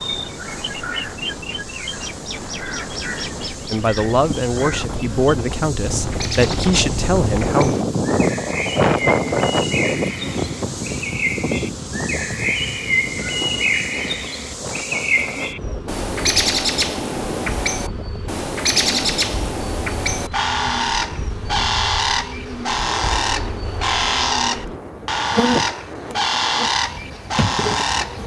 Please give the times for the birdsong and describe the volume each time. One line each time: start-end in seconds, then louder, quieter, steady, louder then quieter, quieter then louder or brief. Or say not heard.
0.0-28.2 louder.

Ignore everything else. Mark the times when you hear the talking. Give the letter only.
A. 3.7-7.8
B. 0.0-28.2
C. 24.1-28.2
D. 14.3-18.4
A.